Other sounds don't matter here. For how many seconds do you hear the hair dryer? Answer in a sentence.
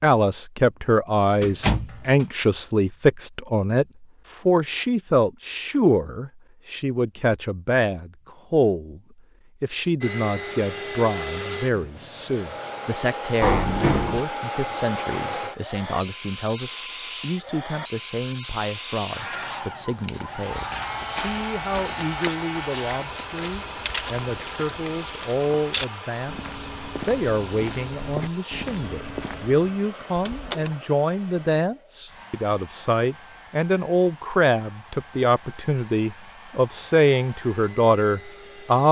You can hear the hair dryer for 29 seconds altogether.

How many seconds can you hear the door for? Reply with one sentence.
The door can be heard for 2 seconds in total.